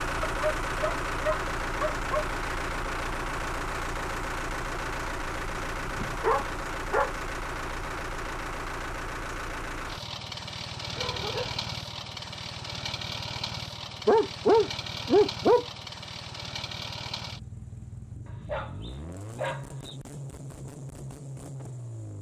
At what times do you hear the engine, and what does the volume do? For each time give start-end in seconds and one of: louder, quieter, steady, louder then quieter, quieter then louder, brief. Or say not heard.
0.0-22.1 quieter.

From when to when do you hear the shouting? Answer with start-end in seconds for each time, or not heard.
not heard.